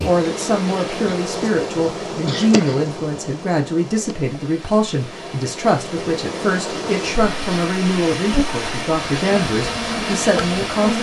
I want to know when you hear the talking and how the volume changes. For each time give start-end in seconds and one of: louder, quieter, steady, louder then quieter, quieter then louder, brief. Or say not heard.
0.0-10.9 steady.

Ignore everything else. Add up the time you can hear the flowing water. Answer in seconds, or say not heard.
11 s.